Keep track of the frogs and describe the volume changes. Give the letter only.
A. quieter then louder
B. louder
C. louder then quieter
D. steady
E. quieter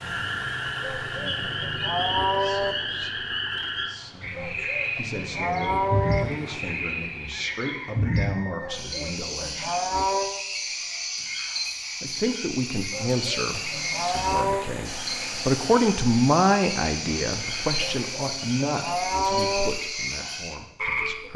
D.